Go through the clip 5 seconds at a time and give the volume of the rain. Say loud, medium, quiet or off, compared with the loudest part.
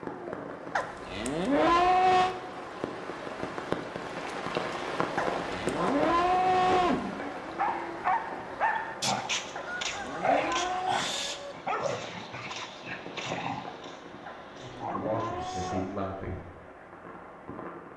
loud, loud, medium, medium.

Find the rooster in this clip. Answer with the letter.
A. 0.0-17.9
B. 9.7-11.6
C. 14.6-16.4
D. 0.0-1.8
B.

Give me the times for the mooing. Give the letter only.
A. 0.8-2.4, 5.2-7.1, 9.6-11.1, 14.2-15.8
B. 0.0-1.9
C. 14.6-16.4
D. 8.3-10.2
A.